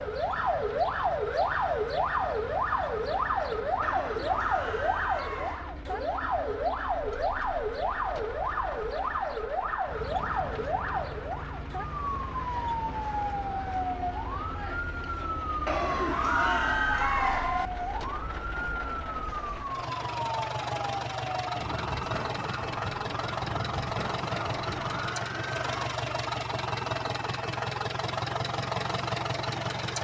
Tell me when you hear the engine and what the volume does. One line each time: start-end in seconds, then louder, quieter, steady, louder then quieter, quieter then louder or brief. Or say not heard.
0.0-29.9 louder.